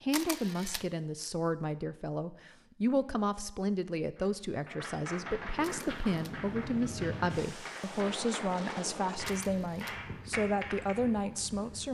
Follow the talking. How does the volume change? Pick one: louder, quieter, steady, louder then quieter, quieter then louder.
steady.